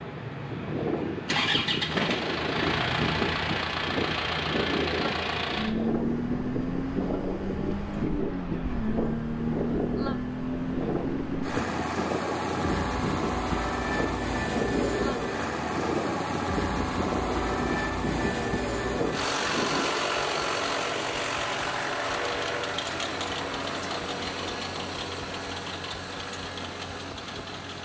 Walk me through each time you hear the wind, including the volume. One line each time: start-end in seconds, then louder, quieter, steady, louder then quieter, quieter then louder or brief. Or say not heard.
0.0-20.0 steady.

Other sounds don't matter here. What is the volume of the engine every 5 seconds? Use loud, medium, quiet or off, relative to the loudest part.
loud, loud, loud, loud, loud, medium.